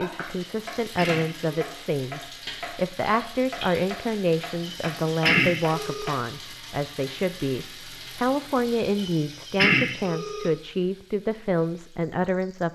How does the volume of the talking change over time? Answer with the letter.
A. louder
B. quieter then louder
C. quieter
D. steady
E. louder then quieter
D.